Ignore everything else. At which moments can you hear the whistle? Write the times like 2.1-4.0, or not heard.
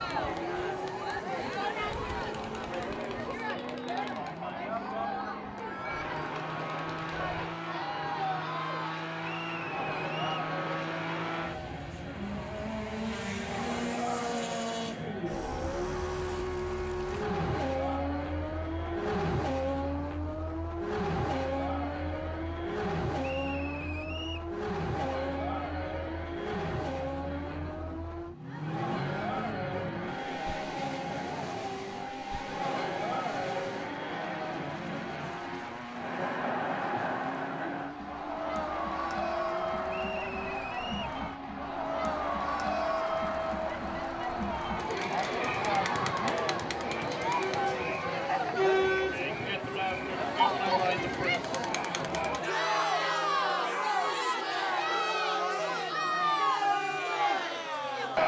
9.2-10.5, 23.2-24.5, 39.9-41.1.